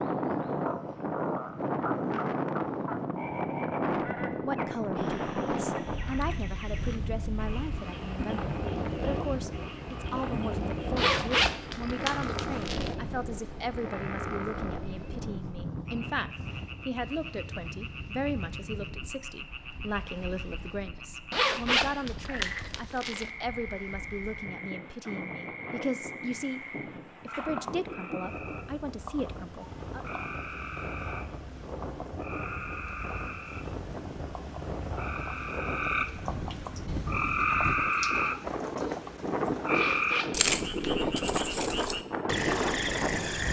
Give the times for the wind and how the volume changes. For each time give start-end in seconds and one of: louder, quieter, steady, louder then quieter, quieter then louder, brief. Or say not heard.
0.0-43.4 quieter then louder.